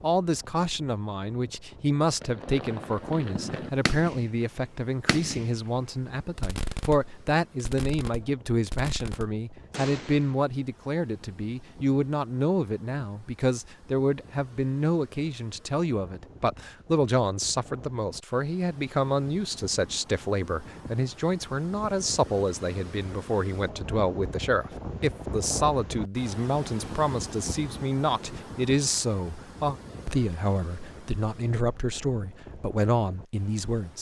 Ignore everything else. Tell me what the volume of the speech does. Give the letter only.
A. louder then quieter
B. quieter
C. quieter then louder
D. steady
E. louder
D.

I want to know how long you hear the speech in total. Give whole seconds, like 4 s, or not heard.
34 s.